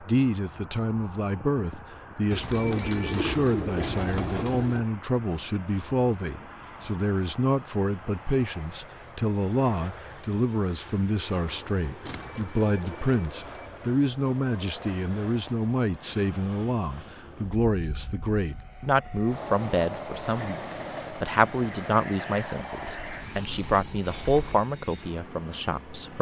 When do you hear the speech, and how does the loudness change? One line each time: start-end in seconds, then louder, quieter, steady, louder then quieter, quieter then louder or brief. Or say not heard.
0.0-26.1 steady.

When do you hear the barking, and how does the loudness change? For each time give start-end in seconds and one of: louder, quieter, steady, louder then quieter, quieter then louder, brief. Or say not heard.
not heard.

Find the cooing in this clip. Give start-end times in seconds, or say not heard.
2.3-4.8, 12.1-13.6, 22.8-24.6.